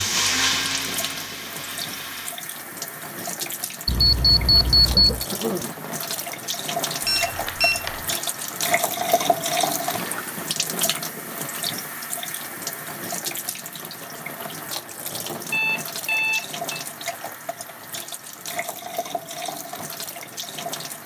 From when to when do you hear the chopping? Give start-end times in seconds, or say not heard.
not heard.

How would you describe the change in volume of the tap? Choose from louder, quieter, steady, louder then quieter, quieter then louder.
louder then quieter.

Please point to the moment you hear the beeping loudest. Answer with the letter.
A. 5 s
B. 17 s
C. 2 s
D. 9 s
A.